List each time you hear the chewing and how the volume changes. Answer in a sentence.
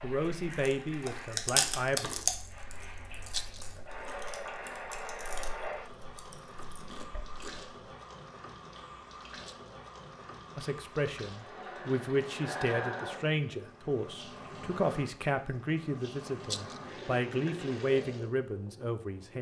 You can hear the chewing from 0.1 to 7.8 s, getting quieter.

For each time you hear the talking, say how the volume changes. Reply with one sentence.
The talking can be heard briefly from 0.0 to 2.1 s; and from 10.6 to 19.3 s, at a steady volume.